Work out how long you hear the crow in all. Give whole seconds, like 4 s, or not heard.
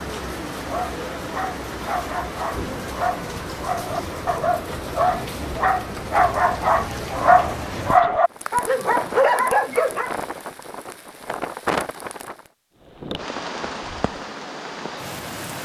not heard.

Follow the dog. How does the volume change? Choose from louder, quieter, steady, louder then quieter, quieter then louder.
louder.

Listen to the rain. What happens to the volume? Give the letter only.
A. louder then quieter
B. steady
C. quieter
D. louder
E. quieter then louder
B.